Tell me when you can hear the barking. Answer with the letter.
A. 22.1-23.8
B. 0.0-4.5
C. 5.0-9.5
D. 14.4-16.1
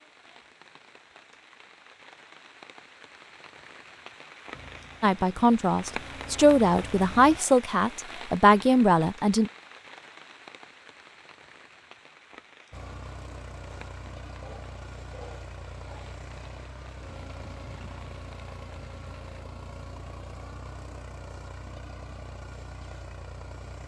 D.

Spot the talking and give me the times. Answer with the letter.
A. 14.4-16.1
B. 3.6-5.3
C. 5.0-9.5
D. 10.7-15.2
C.